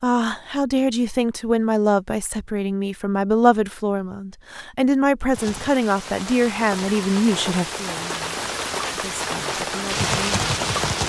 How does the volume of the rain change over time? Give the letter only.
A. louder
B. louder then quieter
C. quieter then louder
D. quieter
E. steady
A.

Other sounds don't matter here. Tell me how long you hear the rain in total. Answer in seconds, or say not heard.
6 s.